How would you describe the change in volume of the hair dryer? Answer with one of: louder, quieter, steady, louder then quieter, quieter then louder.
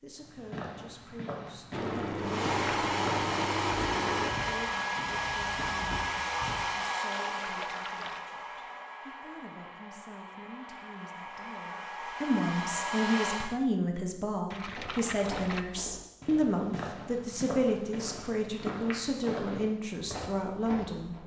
quieter then louder.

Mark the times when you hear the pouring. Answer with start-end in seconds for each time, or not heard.
1.7-4.3, 7.1-8.2, 14.5-15.7.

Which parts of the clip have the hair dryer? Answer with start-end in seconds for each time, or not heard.
2.2-13.6.